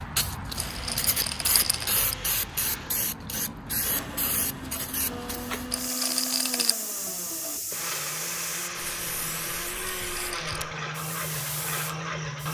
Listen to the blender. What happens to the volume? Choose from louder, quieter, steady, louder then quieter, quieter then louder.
louder.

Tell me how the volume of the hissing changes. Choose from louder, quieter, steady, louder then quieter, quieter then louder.
quieter.